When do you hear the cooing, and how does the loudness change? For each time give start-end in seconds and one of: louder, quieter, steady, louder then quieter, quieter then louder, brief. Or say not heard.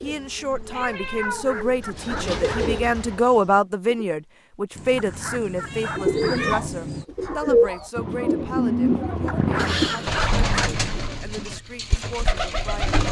0.0-4.2 louder then quieter
6.0-13.0 quieter.